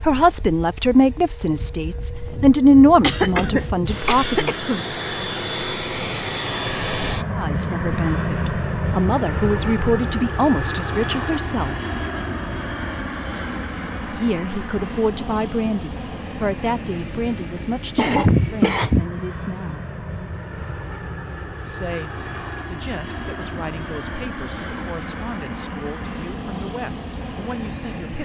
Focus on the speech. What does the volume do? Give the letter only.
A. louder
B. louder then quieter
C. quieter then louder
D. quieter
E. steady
D.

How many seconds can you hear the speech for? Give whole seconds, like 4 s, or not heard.
21 s.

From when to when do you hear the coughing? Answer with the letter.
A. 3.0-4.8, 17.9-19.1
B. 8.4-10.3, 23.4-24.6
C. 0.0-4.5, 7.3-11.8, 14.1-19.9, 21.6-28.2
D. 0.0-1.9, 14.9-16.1
A.